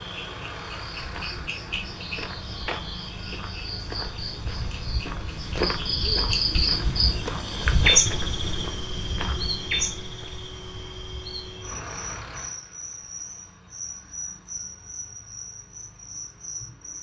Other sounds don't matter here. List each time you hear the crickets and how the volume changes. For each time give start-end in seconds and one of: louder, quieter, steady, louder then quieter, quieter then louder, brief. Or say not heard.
0.0-16.9 louder then quieter.